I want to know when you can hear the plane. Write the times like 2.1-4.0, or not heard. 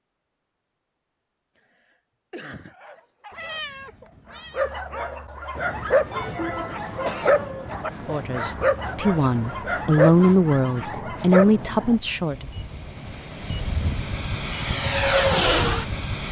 5.5-16.2.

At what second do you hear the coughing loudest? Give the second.
7 s.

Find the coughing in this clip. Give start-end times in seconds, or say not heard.
1.6-2.8, 6.1-7.3, 10.9-12.0.